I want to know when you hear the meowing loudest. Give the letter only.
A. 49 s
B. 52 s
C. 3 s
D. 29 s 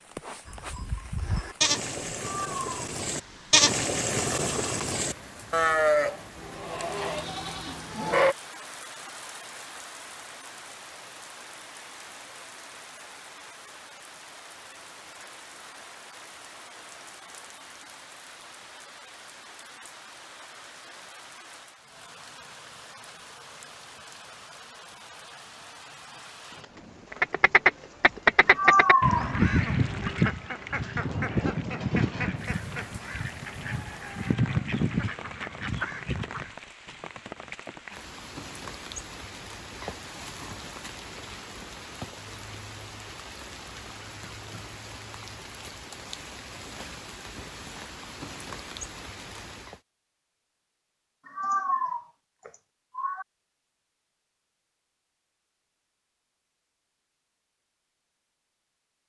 D.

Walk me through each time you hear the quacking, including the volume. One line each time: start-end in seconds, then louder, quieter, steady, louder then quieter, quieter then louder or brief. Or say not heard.
27.1-36.5 quieter then louder.